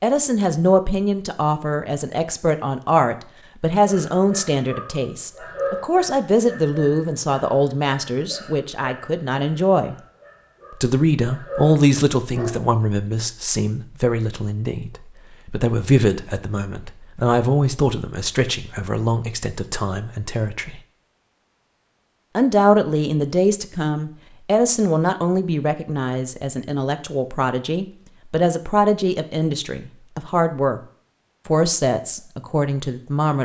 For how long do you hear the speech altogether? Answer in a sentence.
The speech can be heard for 30 seconds in total.